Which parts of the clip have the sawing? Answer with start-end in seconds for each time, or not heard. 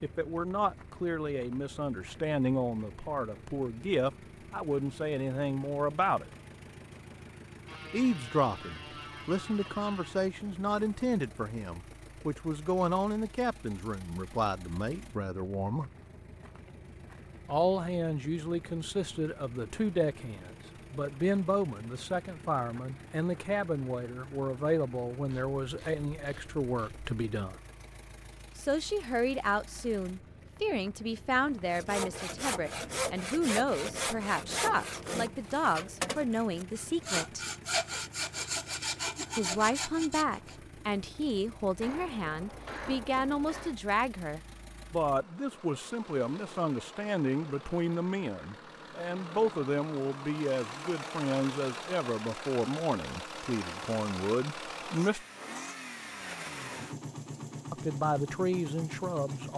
31.6-40.5.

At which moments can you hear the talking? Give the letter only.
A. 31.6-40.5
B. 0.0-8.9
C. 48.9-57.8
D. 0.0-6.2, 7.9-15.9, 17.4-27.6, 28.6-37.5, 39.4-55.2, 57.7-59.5
D.